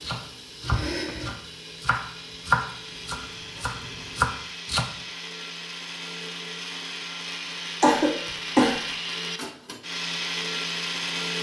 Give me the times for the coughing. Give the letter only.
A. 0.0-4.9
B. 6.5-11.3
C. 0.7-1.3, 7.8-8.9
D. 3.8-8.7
C.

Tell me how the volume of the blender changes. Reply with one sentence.
The loudness of the blender goes up.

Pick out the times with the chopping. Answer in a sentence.
The chopping can be heard from 0.0 to 4.9 s.